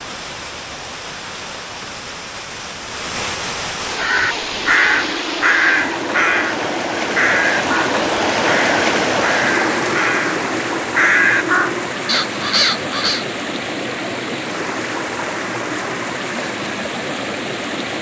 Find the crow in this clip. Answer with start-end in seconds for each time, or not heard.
4.0-13.2.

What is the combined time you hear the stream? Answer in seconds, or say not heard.
18 s.